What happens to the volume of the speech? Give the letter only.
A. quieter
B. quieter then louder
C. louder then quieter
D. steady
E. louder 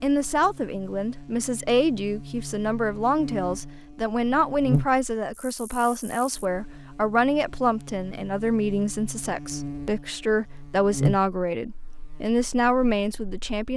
D.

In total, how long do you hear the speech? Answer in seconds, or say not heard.
14 s.